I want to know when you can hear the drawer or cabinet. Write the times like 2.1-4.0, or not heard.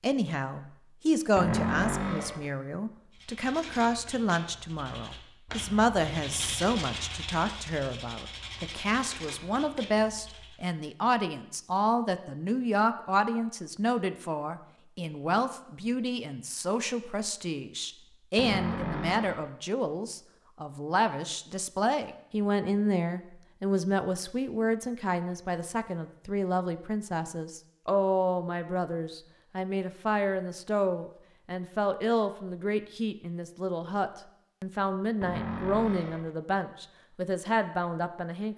1.4-2.5, 18.4-19.5, 35.2-36.4.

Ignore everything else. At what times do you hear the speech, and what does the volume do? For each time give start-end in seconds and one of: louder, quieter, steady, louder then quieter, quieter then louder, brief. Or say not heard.
0.0-38.5 steady.